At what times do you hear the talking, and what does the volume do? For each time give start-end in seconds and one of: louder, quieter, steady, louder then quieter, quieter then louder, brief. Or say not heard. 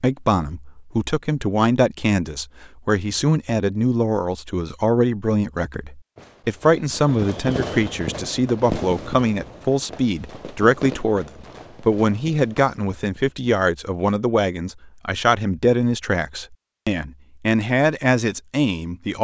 0.0-19.2 steady.